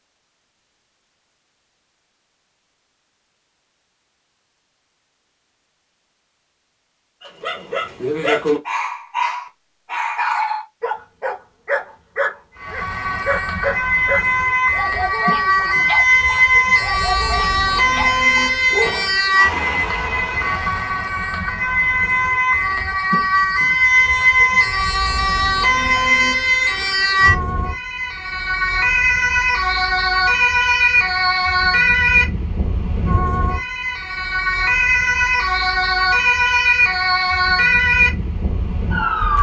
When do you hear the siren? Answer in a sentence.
You can hear the siren from 12.6 to 39.3 s.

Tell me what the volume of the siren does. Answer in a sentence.
The loudness of the siren stays about the same.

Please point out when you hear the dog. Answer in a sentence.
The dog can be heard from 7.2 to 19.1 s.